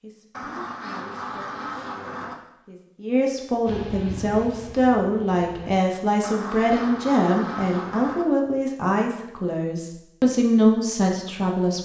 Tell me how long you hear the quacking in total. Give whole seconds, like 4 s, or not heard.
4 s.